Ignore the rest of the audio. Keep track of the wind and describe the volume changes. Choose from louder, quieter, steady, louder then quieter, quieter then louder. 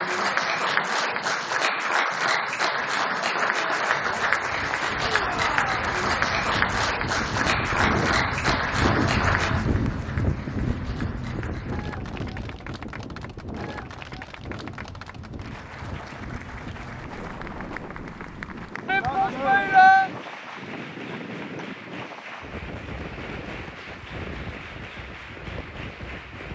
quieter.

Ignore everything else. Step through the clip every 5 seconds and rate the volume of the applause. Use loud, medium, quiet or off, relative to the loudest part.
loud, loud, quiet, quiet, quiet, quiet.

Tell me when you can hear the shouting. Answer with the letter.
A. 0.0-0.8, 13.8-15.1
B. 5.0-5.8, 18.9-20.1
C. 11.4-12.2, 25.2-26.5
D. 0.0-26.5
B.